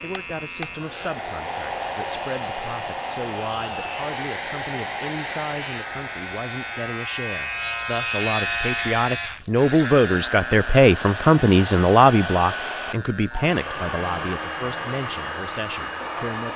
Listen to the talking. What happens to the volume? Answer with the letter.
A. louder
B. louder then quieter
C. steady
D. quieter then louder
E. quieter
B.